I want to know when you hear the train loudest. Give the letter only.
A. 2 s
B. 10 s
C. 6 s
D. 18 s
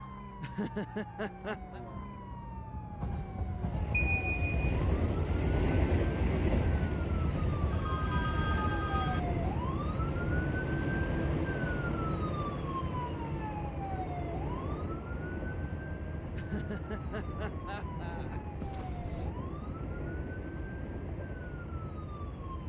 C.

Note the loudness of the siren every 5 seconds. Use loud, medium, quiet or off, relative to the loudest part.
medium, loud, loud, medium, medium.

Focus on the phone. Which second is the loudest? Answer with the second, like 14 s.
4 s.